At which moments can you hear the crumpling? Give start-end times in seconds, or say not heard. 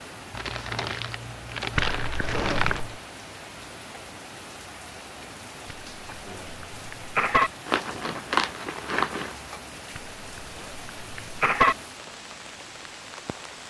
0.3-2.8, 7.7-9.3.